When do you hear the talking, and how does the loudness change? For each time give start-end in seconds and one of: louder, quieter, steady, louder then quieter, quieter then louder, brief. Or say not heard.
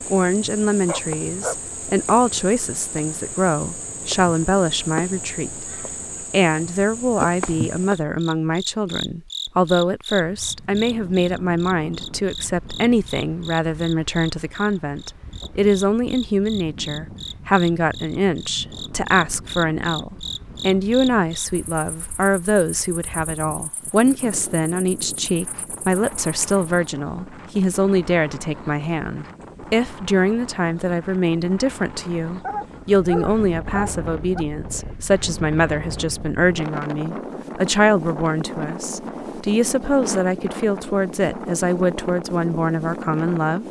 0.1-43.6 steady.